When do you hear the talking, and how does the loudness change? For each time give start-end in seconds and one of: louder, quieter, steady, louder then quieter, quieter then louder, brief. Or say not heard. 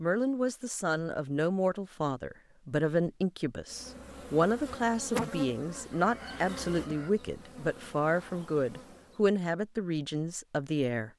0.0-11.1 steady.